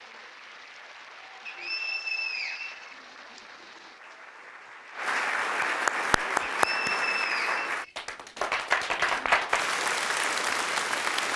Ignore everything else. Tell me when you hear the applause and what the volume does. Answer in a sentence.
The applause can be heard from 0.0 to 11.3 s, getting louder.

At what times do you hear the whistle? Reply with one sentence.
You can hear the whistle from 1.4 to 3.4 s and from 6.6 to 8.0 s.